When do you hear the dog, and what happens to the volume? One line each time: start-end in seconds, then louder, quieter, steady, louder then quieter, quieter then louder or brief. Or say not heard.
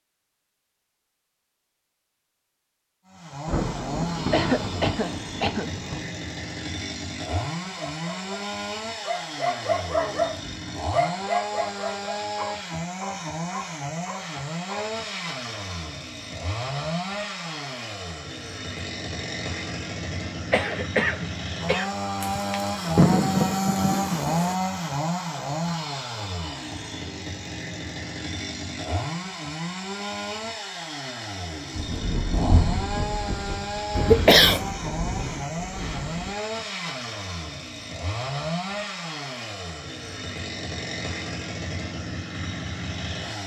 7.6-14.9 louder then quieter.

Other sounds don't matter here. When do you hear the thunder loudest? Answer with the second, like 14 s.
23 s.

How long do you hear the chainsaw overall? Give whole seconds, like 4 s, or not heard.
40 s.